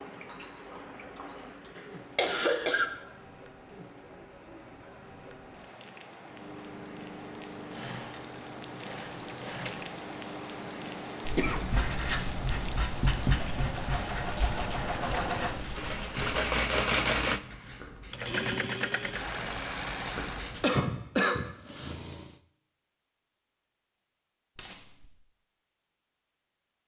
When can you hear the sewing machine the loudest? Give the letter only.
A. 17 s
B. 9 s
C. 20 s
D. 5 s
A.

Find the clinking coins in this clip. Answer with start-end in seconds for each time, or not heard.
0.2-1.6, 24.6-25.1.